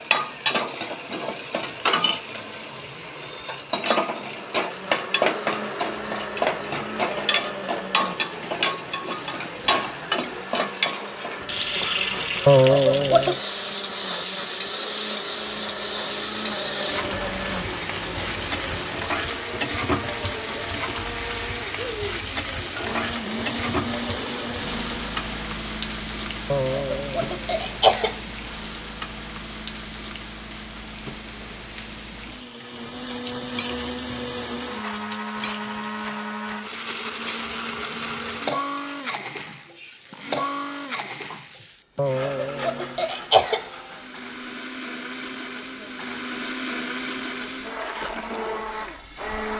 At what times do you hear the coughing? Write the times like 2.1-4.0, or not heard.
12.4-13.4, 26.5-28.1, 42.0-43.6.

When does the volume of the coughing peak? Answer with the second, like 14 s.
13 s.